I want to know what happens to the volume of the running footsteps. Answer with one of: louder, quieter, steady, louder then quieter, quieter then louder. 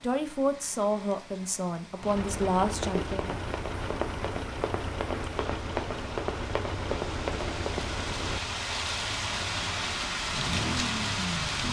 louder.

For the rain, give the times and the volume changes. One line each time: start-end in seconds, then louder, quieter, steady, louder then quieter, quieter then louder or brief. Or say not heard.
0.0-11.6 louder.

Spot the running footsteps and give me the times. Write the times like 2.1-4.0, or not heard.
2.6-7.9.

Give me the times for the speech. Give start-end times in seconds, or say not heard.
0.0-3.5.